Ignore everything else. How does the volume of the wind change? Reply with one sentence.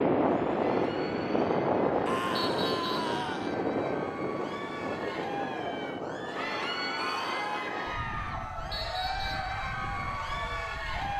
The volume of the wind goes down.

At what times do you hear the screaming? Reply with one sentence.
The screaming can be heard from 2.0 to 3.5 s and from 7.0 to 7.8 s.